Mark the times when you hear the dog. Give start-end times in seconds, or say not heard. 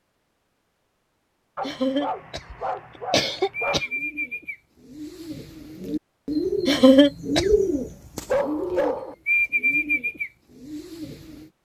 1.6-3.8, 8.2-9.2.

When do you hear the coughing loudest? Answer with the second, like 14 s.
7 s.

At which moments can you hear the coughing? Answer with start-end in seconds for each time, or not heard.
1.6-3.9, 6.7-7.6.